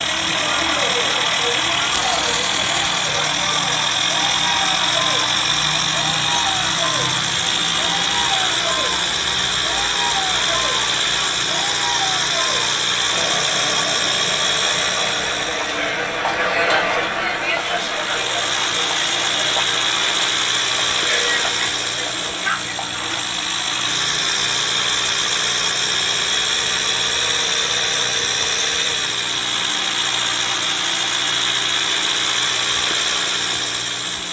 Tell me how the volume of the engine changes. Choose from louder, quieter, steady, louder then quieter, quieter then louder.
steady.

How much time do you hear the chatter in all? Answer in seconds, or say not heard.
23 s.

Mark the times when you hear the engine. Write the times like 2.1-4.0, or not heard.
0.0-34.2.